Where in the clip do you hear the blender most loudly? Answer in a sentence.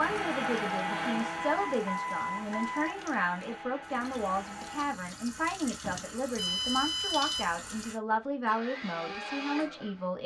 The loudest moment of the blender is at 1 second.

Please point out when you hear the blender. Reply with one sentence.
You can hear the blender from 0.0 to 4.9 s and from 8.4 to 10.1 s.